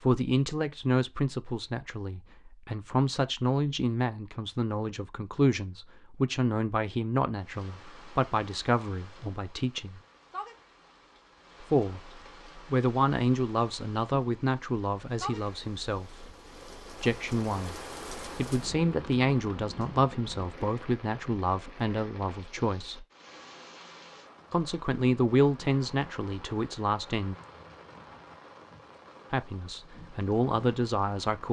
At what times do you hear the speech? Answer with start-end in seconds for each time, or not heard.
0.0-10.0, 11.6-16.2, 17.0-23.1, 24.5-27.4, 29.3-31.4.